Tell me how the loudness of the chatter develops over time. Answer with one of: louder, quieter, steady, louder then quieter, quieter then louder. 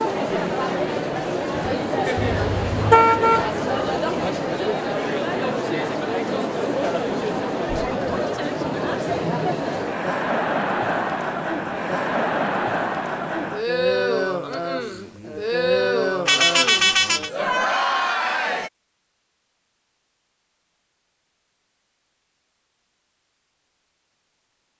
steady.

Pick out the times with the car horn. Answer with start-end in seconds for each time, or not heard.
2.1-3.5, 16.2-17.3.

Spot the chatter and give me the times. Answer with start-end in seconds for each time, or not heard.
0.0-18.7.